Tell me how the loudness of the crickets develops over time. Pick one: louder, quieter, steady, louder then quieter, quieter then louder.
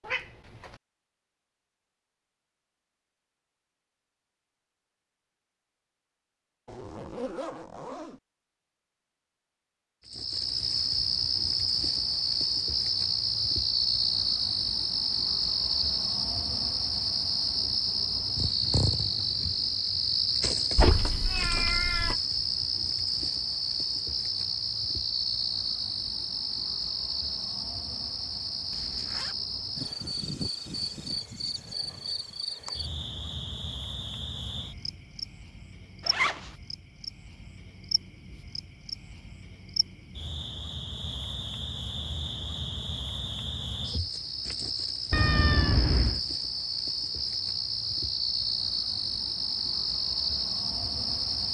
quieter then louder.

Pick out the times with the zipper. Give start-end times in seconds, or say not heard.
6.7-8.2, 28.7-29.4, 36.0-36.5.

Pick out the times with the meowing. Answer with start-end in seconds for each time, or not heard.
0.0-0.8, 20.8-22.1, 45.1-46.2.